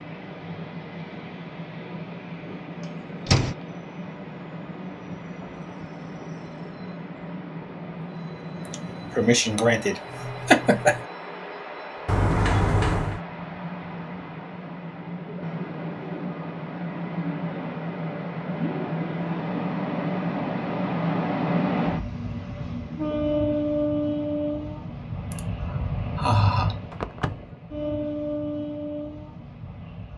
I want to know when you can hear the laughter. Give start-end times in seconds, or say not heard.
8.7-11.0, 25.3-26.8.